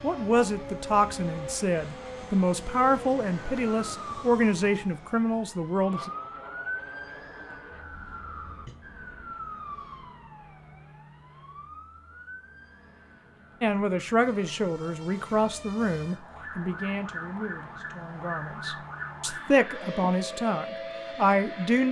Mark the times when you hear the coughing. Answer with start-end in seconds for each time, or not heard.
not heard.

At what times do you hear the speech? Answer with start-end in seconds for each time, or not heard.
0.0-6.1, 13.6-21.8.